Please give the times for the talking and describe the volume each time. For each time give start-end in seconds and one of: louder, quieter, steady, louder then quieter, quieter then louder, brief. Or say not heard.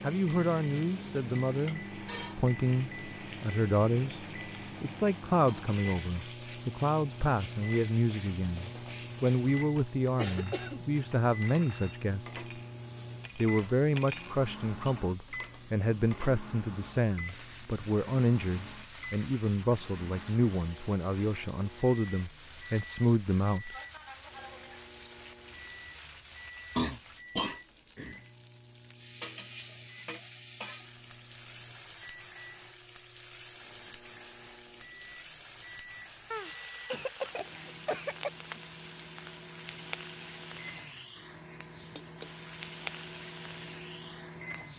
0.0-12.4 steady
13.3-23.8 steady.